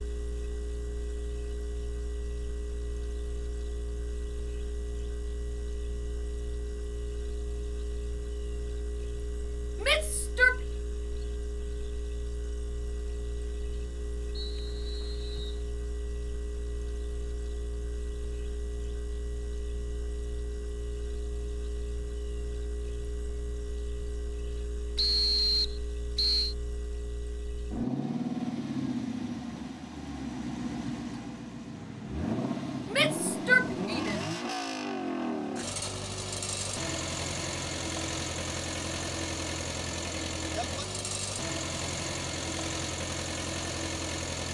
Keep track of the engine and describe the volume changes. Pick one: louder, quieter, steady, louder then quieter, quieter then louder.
louder.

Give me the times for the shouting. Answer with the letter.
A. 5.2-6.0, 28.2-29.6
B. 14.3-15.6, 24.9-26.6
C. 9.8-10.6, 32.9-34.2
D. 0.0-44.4
C.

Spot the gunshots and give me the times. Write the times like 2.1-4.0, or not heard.
not heard.